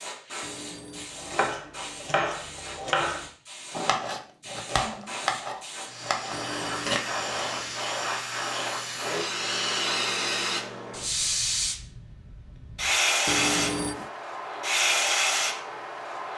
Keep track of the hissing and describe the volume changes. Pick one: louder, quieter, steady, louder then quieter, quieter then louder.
louder.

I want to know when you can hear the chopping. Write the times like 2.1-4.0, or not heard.
1.1-7.0.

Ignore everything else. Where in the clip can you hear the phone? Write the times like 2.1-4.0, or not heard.
0.4-1.1, 6.3-7.8, 13.2-14.1.